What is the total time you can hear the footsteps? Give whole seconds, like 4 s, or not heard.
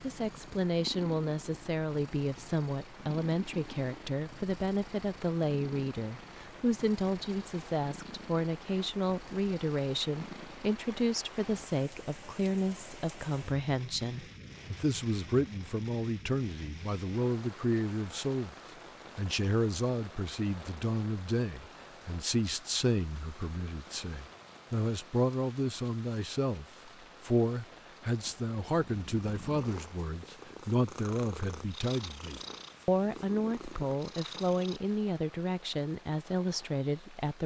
not heard.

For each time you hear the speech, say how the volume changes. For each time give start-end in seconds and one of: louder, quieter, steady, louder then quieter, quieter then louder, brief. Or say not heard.
0.0-18.6 steady
19.1-37.4 steady.